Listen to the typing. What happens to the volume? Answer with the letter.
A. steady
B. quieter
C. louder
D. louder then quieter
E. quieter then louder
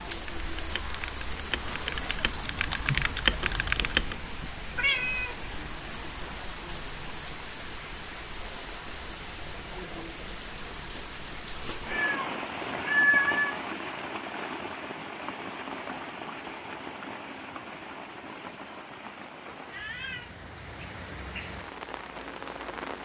C.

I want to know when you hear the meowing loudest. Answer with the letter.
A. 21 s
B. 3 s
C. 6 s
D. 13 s
D.